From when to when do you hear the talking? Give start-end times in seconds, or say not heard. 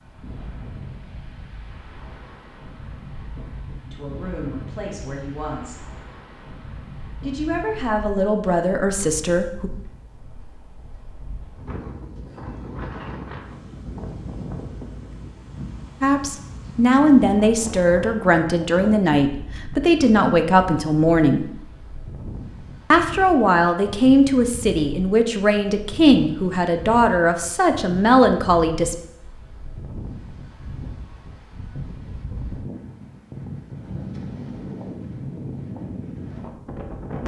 3.9-5.8, 7.2-9.7, 16.0-21.5, 22.9-28.9.